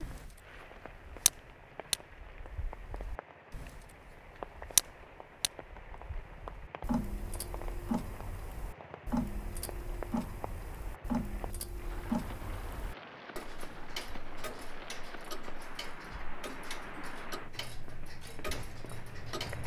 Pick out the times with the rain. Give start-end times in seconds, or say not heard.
0.0-19.6.